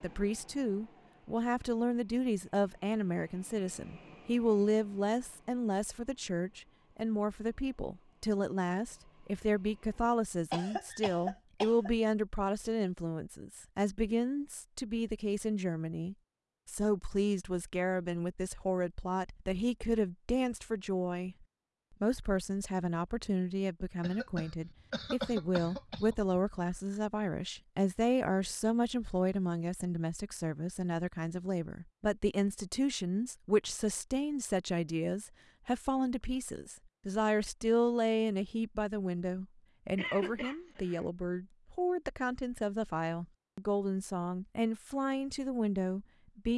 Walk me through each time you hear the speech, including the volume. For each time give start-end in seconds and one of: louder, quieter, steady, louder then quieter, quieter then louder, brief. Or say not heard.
0.0-46.5 steady.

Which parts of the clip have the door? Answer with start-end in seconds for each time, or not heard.
not heard.